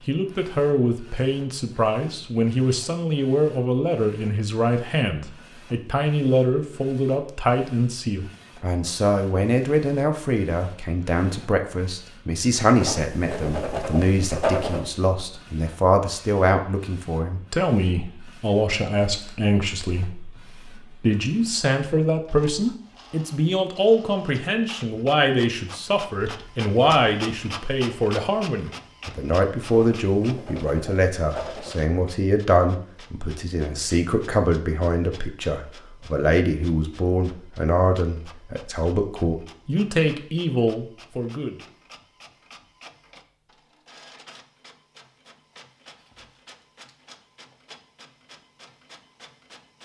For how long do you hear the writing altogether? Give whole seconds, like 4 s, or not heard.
4 s.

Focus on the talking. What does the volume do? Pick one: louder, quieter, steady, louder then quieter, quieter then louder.
steady.